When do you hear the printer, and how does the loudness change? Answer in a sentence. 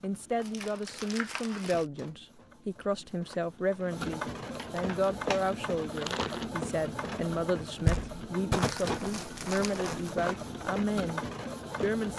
The printer can be heard from 0.0 to 12.1 s, getting louder.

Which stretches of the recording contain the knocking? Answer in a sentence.
The knocking can be heard from 7.8 to 8.6 s.